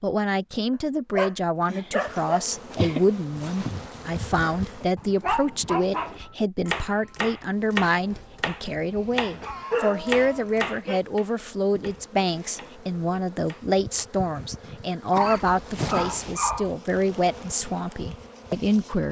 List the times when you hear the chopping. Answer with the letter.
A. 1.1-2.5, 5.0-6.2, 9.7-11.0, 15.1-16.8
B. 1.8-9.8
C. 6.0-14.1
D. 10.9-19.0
C.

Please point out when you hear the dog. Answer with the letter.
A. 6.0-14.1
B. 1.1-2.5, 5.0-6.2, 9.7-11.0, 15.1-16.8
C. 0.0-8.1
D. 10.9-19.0
B.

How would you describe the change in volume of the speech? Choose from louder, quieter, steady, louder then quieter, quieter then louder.
steady.